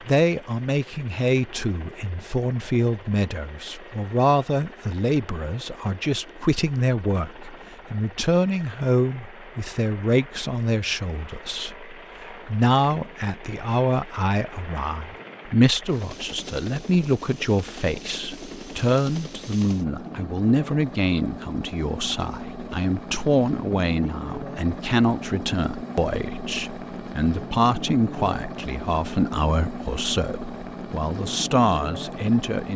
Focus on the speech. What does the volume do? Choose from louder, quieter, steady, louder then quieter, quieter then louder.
steady.